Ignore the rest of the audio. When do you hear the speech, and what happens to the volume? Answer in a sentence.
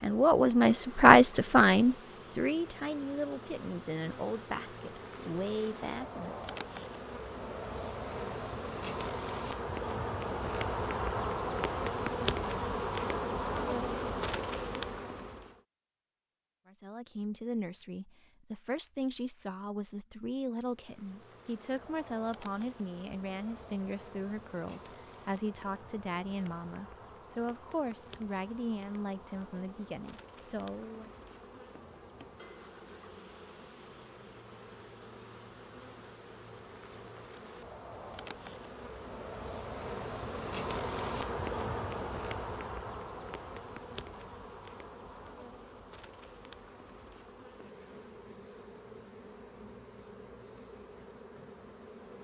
You can hear the speech from 0.0 to 6.5 s, getting quieter; and from 16.6 to 31.1 s, at a steady volume.